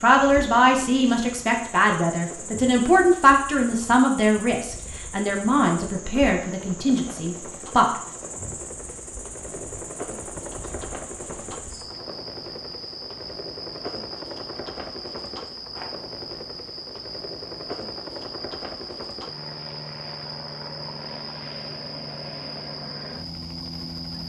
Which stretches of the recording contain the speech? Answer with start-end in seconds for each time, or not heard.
0.0-7.9.